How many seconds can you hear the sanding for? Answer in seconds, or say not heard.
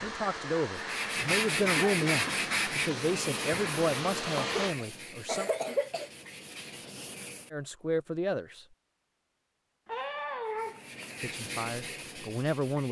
9 s.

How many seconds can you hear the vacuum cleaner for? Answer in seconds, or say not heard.
5 s.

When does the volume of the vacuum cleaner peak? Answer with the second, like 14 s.
4 s.